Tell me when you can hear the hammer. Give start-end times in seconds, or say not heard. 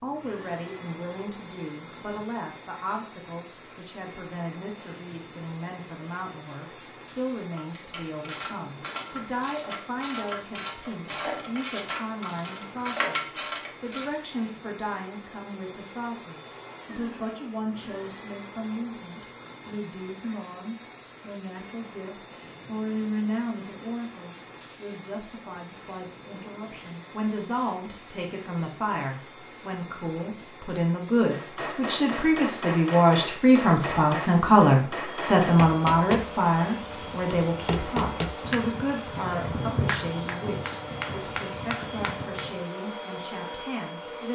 31.3-42.6.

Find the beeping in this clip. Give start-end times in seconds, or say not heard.
not heard.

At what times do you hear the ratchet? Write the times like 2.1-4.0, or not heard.
7.5-14.1.